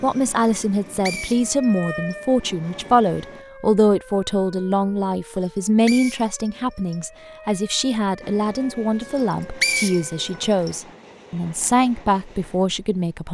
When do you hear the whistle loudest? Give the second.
10 s.